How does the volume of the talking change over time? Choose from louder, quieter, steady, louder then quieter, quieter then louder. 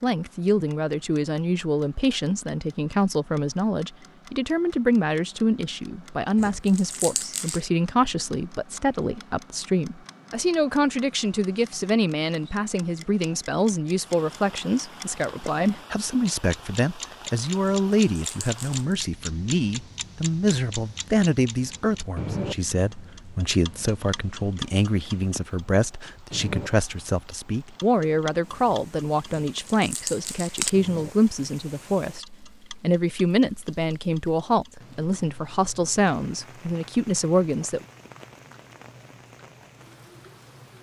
steady.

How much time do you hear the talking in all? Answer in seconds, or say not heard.
38 s.